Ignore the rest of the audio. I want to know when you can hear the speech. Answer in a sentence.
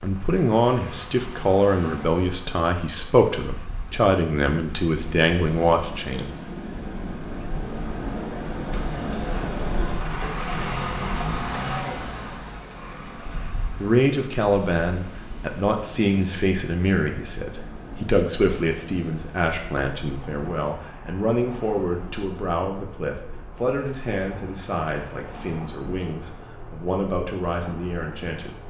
The speech can be heard from 0.0 to 6.3 s and from 13.8 to 28.6 s.